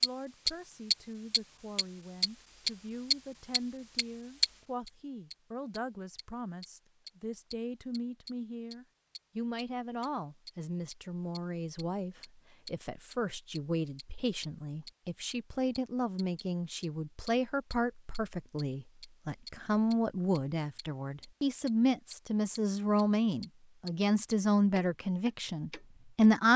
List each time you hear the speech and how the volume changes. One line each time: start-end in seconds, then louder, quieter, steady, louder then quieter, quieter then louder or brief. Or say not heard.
0.0-26.5 louder.